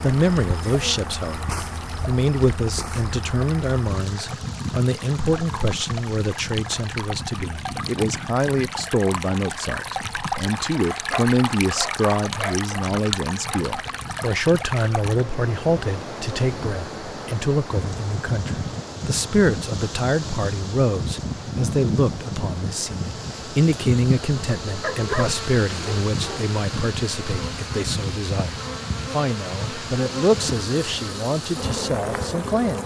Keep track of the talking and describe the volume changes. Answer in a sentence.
The loudness of the talking stays about the same.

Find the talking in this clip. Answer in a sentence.
The talking can be heard from 0.0 to 32.8 s.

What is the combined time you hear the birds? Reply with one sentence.
You can't hear the birds here.